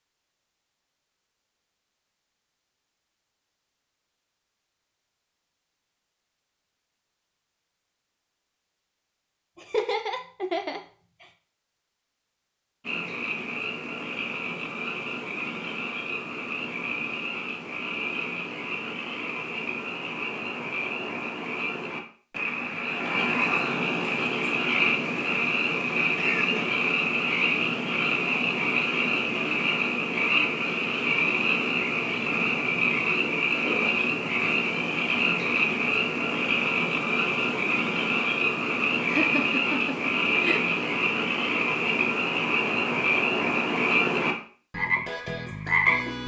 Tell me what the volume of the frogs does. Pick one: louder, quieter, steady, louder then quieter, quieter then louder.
louder.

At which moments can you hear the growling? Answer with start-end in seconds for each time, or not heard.
not heard.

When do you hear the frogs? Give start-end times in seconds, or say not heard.
12.8-46.2.